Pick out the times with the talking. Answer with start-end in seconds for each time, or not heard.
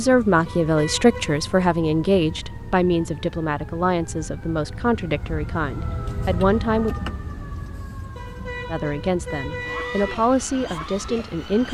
0.0-7.0, 8.7-11.7.